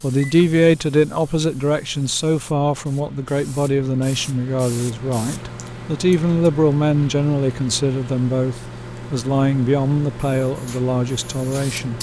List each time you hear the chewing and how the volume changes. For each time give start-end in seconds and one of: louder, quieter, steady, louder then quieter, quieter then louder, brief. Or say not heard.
not heard.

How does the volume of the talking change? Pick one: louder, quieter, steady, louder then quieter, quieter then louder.
steady.